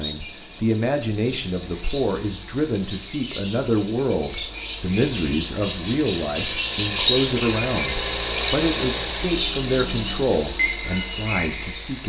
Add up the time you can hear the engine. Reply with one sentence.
The engine can be heard for 12 seconds in total.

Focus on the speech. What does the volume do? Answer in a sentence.
The volume of the speech stays about the same.